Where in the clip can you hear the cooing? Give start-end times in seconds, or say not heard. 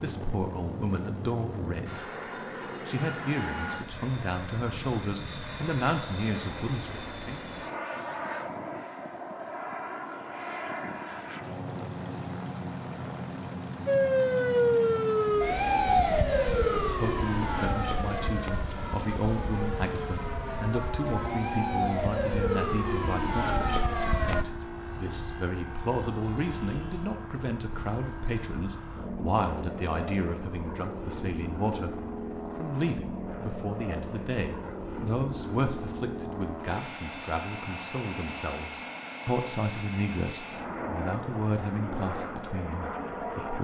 not heard.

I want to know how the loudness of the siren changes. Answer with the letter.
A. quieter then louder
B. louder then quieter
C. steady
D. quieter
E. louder
A.